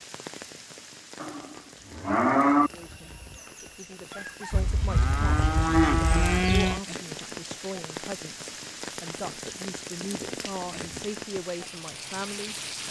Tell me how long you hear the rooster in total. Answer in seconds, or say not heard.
2 s.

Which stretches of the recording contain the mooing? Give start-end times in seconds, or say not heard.
1.2-2.7, 4.5-6.8, 9.2-11.2.